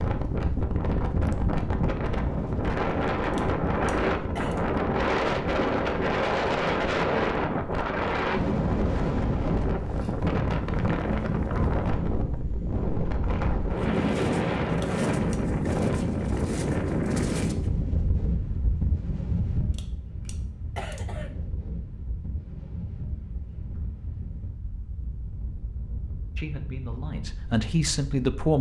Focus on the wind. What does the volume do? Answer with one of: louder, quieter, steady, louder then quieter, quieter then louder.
quieter.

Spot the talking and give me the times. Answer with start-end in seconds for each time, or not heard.
26.4-28.5.